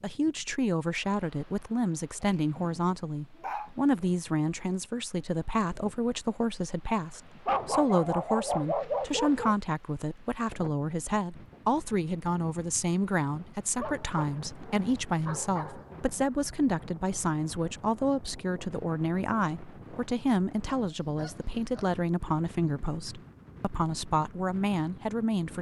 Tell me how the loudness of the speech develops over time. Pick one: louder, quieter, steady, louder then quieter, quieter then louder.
steady.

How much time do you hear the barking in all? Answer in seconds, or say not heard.
7 s.